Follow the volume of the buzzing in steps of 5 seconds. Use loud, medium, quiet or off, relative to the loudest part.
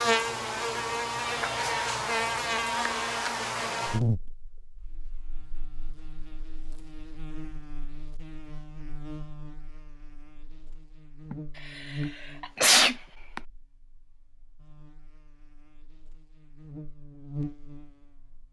loud, quiet, quiet, quiet.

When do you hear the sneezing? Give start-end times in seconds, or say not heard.
11.3-13.4.